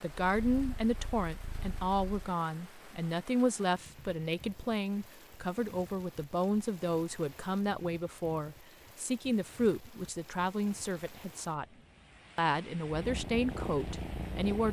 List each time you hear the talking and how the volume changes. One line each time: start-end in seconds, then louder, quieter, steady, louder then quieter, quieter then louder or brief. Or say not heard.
0.0-11.7 steady
12.3-14.6 brief.